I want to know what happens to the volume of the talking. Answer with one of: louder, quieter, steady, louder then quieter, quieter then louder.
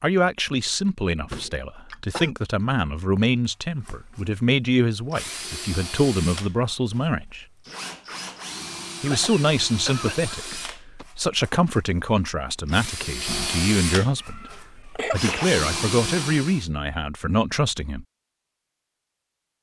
steady.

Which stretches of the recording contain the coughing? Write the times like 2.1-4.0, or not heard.
1.3-2.3, 9.0-11.1, 14.2-15.5.